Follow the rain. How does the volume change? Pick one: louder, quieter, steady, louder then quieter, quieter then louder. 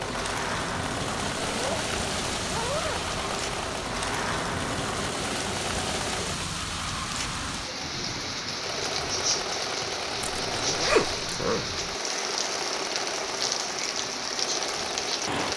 steady.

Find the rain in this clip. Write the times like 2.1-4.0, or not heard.
0.0-15.5.